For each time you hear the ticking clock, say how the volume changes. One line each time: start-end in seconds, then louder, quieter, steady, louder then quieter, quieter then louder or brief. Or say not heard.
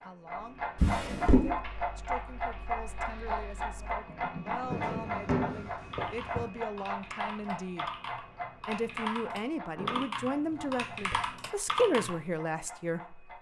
0.0-13.3 quieter.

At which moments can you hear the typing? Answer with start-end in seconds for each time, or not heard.
1.4-12.2.